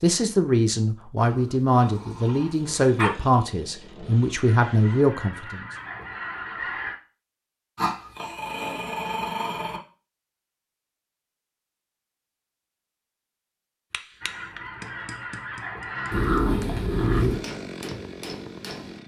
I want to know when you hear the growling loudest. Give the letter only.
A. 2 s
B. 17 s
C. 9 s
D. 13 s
B.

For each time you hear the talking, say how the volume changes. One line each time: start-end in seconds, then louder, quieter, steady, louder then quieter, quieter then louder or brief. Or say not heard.
0.0-5.7 steady.